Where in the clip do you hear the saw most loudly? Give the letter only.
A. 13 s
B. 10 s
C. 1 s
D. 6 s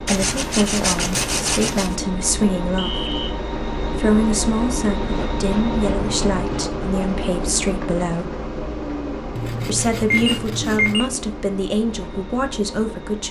C.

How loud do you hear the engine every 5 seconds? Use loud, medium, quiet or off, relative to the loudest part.
loud, loud, medium.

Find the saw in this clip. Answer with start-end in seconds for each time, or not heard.
0.1-1.9, 5.1-6.8, 9.3-11.0.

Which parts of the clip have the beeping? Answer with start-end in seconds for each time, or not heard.
2.8-3.2, 10.1-11.1.